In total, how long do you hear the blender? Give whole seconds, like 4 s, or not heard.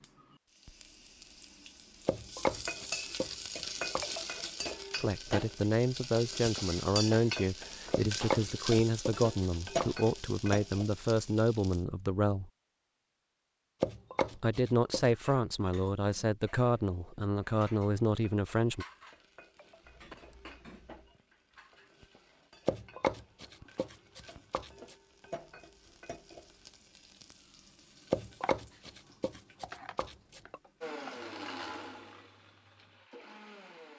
3 s.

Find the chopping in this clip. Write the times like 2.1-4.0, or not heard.
2.0-4.0, 7.9-10.2, 13.8-15.1, 22.6-24.9, 28.1-30.6.